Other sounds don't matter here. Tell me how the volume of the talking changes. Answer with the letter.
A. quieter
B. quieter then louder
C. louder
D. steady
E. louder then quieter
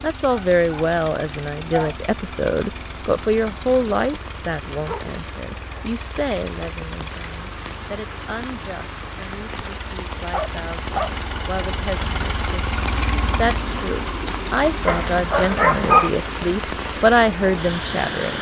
B.